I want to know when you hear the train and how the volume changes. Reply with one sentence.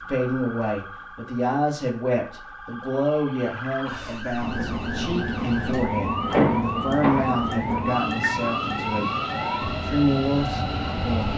The train can be heard from 4.4 to 11.3 s, at a steady volume.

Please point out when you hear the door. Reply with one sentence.
The door can be heard from 6.3 to 8.3 s.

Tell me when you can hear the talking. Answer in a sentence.
The talking can be heard from 0.1 to 9.1 s and from 9.8 to 11.3 s.